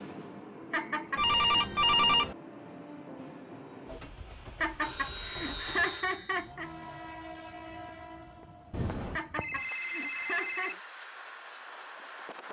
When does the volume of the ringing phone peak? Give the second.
2 s.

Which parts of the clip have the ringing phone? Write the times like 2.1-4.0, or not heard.
1.1-2.4, 4.8-6.5, 8.7-10.8.